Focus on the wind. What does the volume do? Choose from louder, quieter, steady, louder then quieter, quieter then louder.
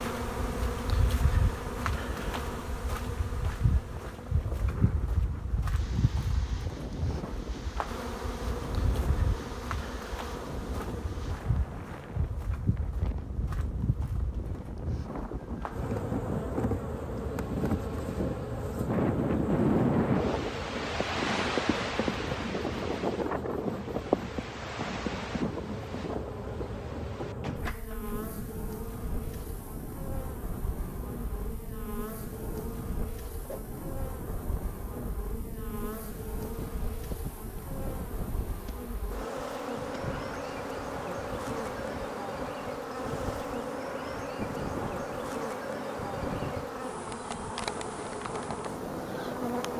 louder then quieter.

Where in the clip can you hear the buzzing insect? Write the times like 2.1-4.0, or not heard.
0.0-49.7.